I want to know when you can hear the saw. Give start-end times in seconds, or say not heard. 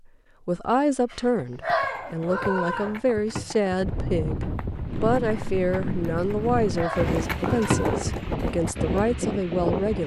not heard.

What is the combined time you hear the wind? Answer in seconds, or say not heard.
6 s.